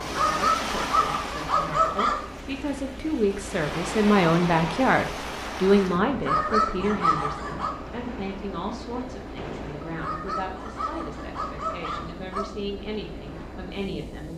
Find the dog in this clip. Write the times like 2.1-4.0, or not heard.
0.1-2.2, 6.2-7.8, 9.9-12.4.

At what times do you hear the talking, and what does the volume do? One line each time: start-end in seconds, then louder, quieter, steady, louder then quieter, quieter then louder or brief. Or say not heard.
0.0-14.3 louder then quieter.